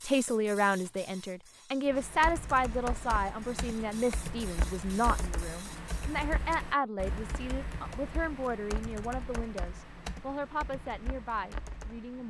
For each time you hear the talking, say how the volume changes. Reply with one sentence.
The talking can be heard from 0.0 to 12.2 s, getting quieter.